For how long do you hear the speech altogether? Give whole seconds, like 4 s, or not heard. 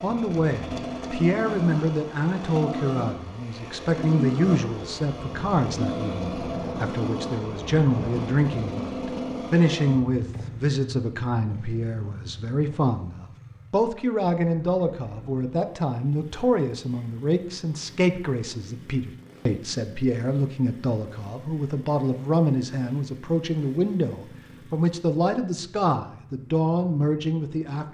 28 s.